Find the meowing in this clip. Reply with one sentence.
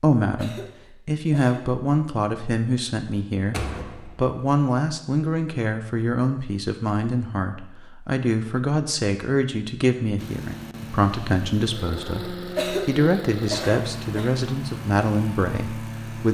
You can't hear the meowing here.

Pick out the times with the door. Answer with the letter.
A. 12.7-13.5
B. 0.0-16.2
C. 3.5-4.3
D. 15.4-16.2
C.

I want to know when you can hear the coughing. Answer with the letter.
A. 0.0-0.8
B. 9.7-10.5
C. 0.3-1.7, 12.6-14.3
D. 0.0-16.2
C.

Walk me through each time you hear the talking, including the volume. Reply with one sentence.
You can hear the talking from 0.0 to 16.2 s, at a steady volume.